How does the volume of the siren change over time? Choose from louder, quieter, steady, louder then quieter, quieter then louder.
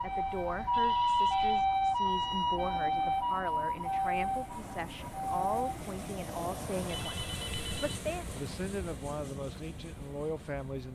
quieter.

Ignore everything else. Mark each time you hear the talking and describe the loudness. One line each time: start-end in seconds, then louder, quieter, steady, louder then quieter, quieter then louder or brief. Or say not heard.
0.0-10.8 steady.